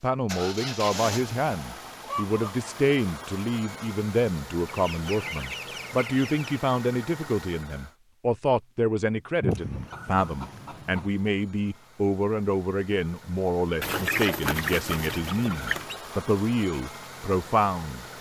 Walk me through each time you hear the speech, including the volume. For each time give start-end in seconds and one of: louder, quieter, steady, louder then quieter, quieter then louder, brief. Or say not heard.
0.0-18.1 steady.